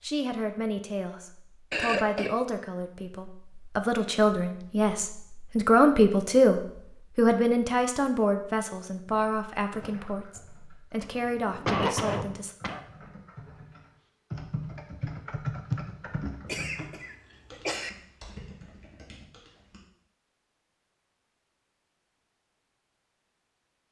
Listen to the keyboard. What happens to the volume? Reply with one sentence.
The loudness of the keyboard goes up, then down.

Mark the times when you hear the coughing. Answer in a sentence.
The coughing can be heard from 1.7 to 2.4 s, from 11.7 to 12.8 s and from 16.4 to 17.9 s.